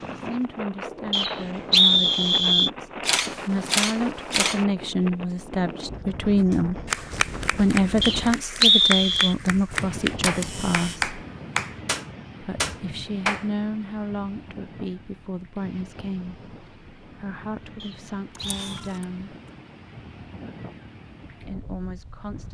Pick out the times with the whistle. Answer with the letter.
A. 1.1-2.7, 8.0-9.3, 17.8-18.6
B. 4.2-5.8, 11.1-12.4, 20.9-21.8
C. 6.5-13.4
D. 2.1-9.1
A.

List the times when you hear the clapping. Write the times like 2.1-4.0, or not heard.
6.5-13.4.